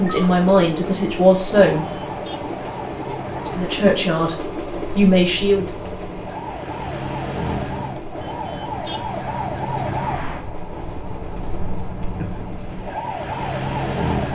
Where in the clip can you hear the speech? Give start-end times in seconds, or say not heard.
0.0-1.9, 3.3-5.7.